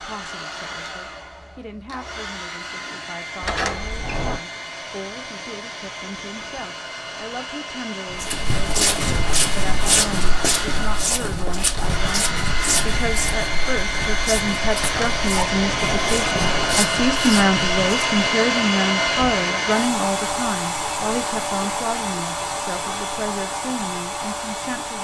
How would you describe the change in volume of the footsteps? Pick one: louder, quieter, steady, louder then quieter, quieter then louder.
quieter.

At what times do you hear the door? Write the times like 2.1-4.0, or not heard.
3.4-4.4, 14.8-16.9.